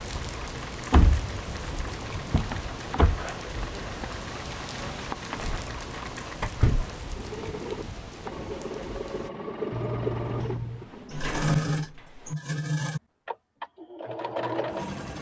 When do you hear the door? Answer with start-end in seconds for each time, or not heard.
0.9-3.2, 5.3-5.7, 6.4-6.8, 10.4-12.3.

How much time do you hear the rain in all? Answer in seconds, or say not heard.
9 s.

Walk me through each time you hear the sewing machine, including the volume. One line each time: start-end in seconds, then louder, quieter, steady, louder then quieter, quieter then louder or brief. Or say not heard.
0.0-15.1 louder.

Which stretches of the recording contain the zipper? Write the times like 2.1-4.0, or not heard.
3.0-3.5, 9.7-10.9.